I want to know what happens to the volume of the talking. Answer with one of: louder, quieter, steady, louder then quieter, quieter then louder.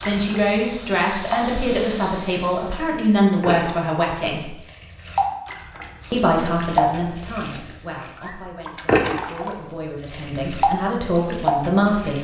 quieter then louder.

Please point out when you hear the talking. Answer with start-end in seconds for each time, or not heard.
0.1-4.5, 6.1-12.2.